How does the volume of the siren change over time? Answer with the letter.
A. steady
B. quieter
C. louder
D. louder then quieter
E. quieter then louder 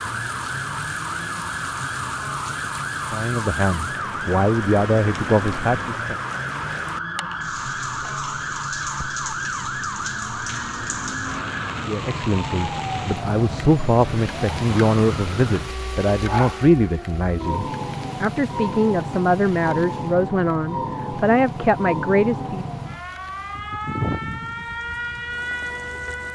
A.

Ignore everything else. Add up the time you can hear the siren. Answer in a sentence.
The siren can be heard for 26 seconds in total.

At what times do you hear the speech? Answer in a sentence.
You can hear the speech from 3.1 to 6.2 s and from 11.8 to 22.6 s.